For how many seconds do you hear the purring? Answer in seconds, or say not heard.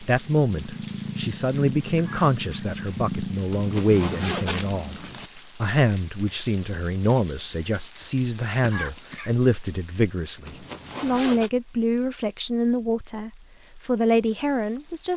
5 s.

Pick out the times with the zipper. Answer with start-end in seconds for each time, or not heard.
3.5-5.3, 10.4-11.5.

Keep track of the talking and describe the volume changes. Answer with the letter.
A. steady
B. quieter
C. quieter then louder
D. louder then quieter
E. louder
A.